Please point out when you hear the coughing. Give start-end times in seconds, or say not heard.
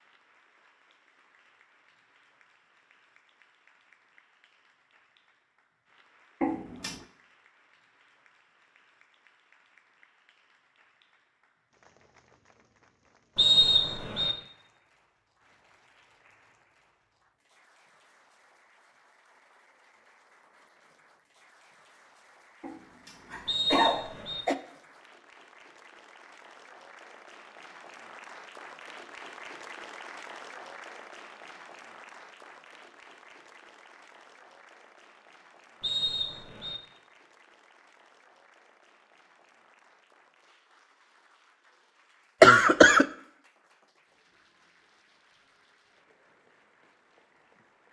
6.4-7.0, 22.6-24.6, 42.4-43.0.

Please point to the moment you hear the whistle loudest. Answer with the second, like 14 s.
14 s.